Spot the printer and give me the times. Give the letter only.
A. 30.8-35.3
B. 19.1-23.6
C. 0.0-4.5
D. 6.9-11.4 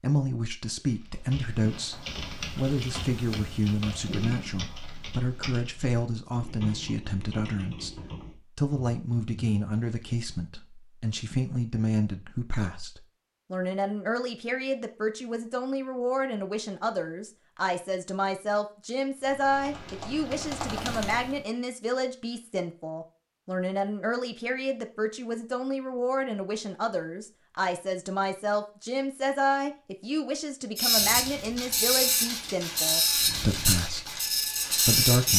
A.